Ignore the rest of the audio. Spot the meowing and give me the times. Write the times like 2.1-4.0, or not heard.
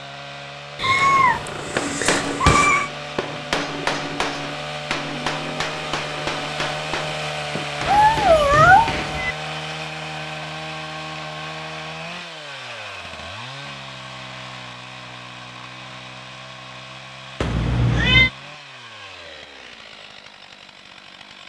0.8-2.9, 7.8-9.3, 17.4-18.3.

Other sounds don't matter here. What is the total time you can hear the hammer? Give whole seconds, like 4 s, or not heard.
8 s.